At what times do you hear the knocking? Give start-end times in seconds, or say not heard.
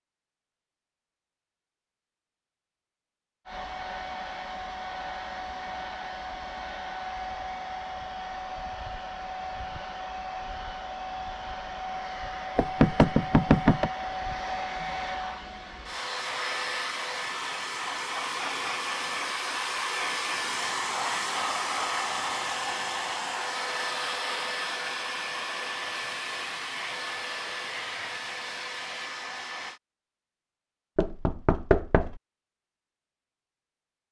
12.6-13.9, 30.9-32.1.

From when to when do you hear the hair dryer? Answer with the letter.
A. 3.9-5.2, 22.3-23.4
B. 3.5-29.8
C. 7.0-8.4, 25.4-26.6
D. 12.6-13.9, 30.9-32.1
B.